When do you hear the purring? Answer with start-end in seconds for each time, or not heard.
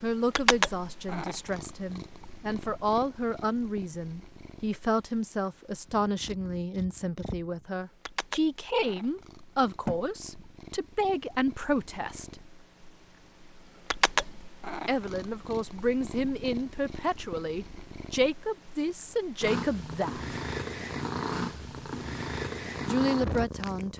0.0-23.9.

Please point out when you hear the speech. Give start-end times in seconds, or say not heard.
0.0-12.4, 14.8-20.4, 22.9-23.9.